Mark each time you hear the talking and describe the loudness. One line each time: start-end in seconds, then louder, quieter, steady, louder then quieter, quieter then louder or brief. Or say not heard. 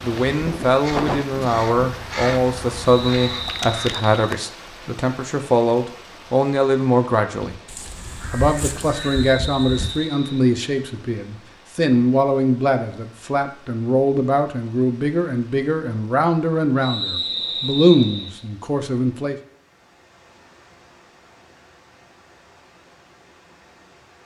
0.0-7.5 steady
8.3-19.4 steady.